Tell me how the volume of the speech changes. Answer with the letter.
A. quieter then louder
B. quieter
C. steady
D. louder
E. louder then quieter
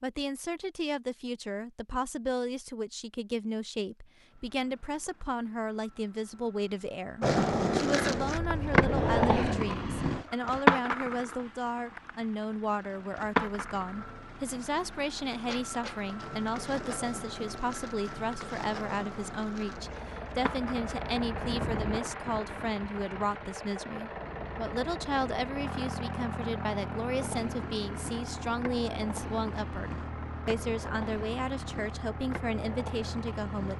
C.